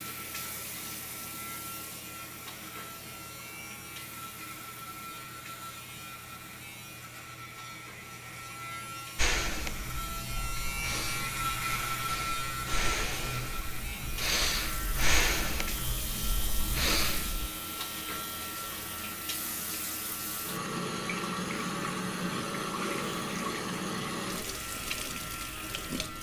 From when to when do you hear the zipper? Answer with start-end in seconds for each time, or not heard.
not heard.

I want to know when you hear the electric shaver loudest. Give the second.
12 s.